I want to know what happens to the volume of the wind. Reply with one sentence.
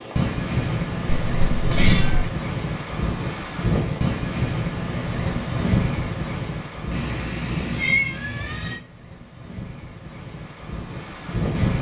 The volume of the wind goes down.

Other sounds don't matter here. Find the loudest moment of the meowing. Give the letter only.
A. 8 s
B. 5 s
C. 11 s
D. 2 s
A.